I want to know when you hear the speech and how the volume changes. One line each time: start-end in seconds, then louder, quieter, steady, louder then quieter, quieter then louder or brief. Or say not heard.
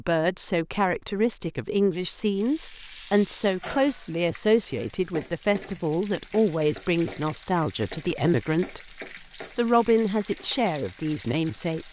0.0-8.9 steady
9.6-11.8 brief.